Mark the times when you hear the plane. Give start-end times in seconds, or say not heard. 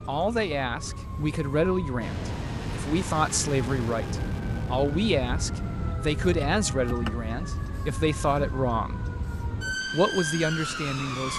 2.0-6.0.